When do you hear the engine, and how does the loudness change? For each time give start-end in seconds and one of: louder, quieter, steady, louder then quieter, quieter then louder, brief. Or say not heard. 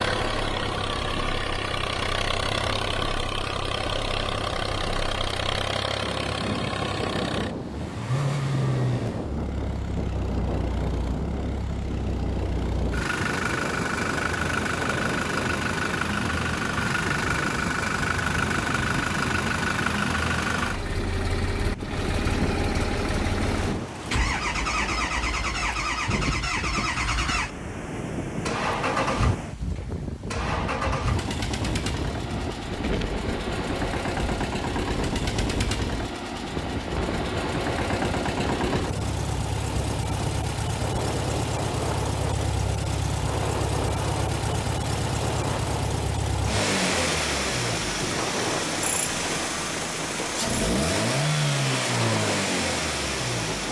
0.0-53.6 steady.